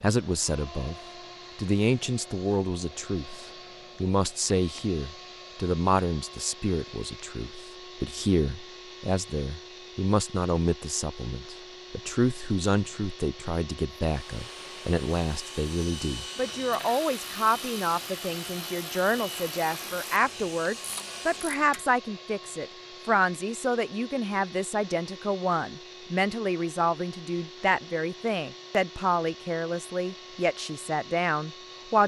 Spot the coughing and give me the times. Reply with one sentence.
The coughing can't be heard in this clip.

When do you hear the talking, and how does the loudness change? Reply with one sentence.
The talking can be heard briefly from 0.0 to 0.9 s; and from 1.6 to 32.0 s, at a steady volume.